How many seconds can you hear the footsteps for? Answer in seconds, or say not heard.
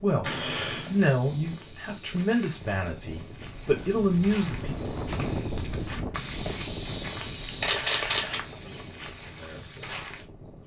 10 s.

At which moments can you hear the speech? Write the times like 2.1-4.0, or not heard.
0.0-4.8, 8.6-9.9.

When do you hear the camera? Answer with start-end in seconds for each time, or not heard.
0.2-0.9, 7.6-8.4.